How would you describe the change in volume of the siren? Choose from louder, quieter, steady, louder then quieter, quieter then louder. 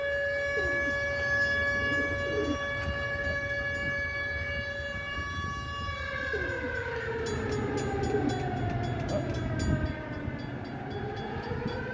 quieter.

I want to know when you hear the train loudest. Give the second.
9 s.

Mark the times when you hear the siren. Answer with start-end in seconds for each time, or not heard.
0.0-11.8.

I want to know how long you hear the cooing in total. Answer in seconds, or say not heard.
4 s.